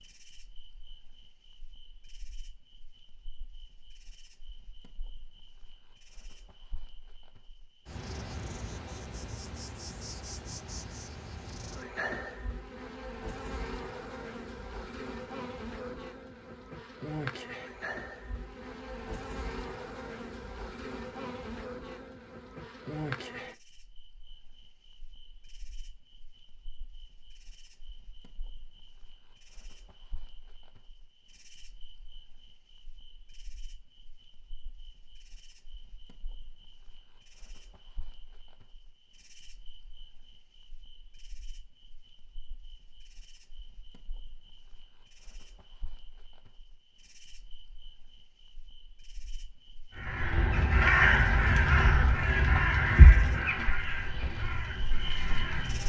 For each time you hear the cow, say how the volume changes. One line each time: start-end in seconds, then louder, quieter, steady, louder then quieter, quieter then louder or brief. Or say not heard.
not heard.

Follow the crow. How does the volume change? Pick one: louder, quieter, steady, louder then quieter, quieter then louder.
quieter.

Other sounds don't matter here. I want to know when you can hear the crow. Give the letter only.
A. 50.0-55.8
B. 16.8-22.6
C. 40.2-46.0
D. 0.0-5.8
A.